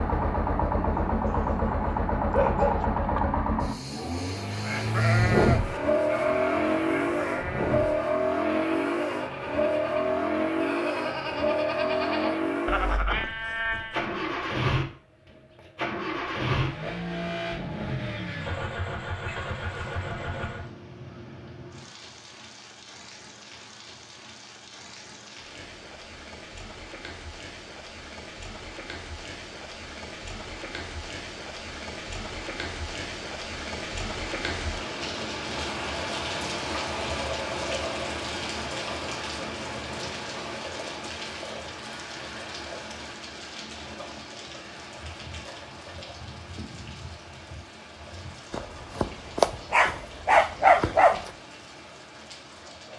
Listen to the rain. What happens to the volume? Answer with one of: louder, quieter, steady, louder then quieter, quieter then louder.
louder then quieter.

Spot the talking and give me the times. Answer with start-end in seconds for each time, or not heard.
not heard.